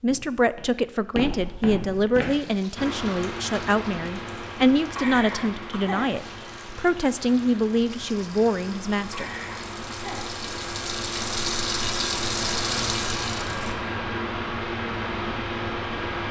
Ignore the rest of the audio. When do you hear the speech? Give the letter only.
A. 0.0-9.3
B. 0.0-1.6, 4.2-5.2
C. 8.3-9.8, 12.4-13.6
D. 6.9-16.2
A.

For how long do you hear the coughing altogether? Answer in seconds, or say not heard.
3 s.